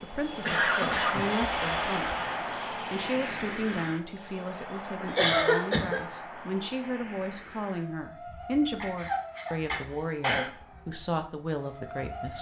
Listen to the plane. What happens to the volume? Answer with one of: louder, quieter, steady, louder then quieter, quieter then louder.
quieter.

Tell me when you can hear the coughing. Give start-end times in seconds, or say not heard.
0.5-2.3, 5.0-6.0, 8.8-10.5.